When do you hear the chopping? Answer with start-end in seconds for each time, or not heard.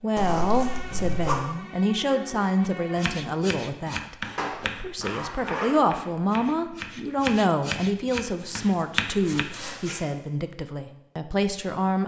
3.0-9.4.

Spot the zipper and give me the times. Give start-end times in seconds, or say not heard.
0.1-1.4, 4.2-6.0, 8.3-10.1.